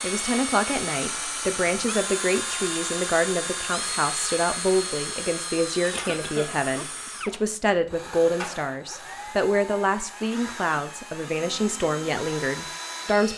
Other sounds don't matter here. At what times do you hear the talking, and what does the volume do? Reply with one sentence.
The talking can be heard from 0.0 to 13.3 s, at a steady volume.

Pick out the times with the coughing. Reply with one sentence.
The coughing can be heard from 5.9 to 6.6 s.